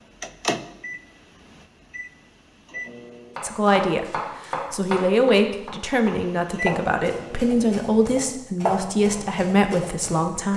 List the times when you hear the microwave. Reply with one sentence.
You can hear the microwave from 0.2 to 3.4 s and from 6.0 to 7.5 s.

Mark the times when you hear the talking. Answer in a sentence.
You can hear the talking from 3.4 to 10.5 s.